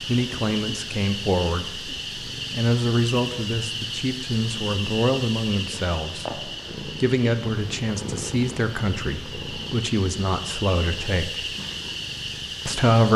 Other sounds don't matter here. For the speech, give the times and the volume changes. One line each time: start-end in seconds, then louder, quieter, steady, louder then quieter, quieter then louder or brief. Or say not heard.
0.1-11.4 steady
12.7-13.1 brief.